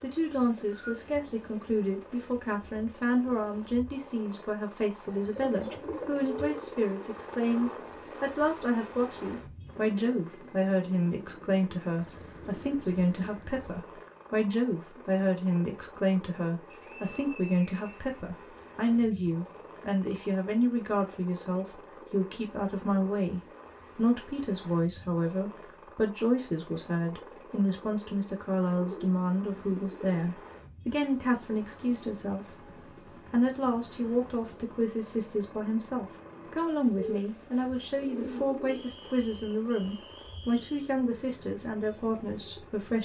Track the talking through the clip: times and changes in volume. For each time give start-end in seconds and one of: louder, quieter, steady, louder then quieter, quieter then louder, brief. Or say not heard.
0.0-42.9 steady.